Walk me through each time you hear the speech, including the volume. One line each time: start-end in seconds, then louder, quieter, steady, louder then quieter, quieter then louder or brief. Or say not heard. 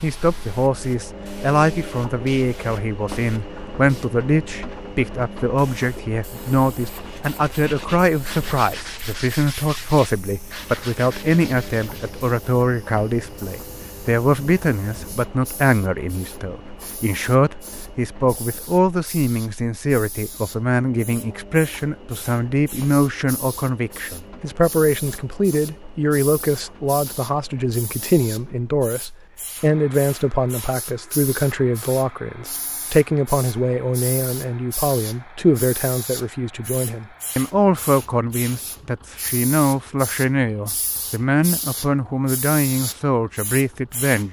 0.0-44.2 steady.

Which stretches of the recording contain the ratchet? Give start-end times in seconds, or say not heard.
not heard.